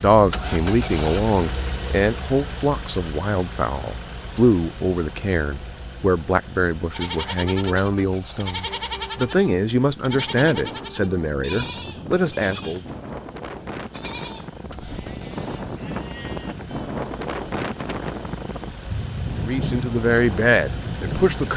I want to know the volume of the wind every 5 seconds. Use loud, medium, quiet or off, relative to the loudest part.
off, off, medium, loud, loud.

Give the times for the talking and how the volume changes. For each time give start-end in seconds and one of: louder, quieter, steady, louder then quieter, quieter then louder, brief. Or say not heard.
0.0-12.8 steady
19.4-21.5 brief.